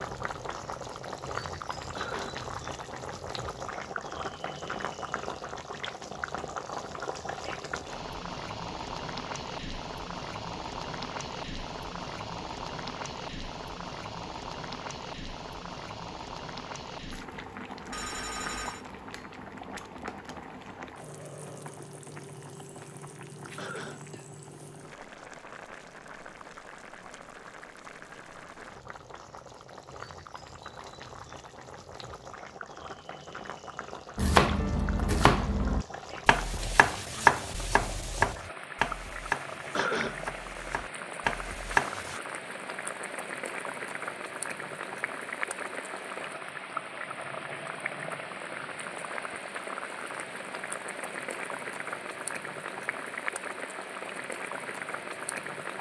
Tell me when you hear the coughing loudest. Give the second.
40 s.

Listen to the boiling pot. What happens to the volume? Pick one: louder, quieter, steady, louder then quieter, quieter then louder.
quieter then louder.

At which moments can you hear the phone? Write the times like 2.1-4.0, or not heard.
17.9-18.9.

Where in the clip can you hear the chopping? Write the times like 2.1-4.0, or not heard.
34.1-42.2.